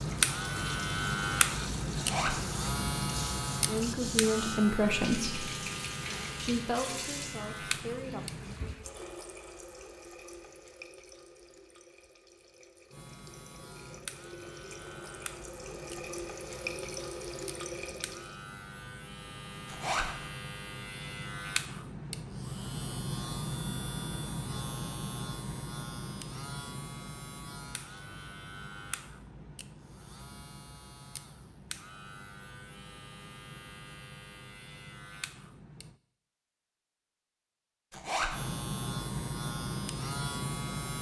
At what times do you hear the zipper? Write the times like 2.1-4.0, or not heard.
1.9-2.4, 19.6-20.1, 37.9-38.4.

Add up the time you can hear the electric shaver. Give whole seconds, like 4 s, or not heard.
34 s.